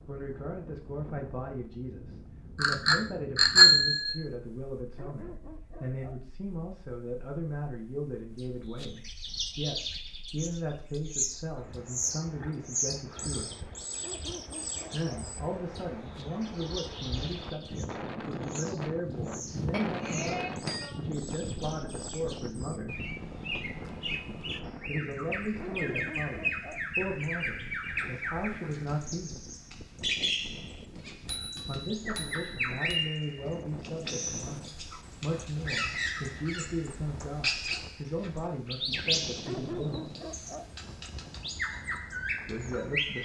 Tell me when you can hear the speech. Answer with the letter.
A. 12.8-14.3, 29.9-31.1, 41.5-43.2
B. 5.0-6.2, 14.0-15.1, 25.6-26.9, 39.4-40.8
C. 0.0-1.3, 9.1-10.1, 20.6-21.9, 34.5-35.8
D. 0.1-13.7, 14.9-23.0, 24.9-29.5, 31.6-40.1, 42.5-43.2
D.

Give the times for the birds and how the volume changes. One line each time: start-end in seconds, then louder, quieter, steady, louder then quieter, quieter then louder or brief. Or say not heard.
8.3-43.2 quieter then louder.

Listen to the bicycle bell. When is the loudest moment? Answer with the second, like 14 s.
4 s.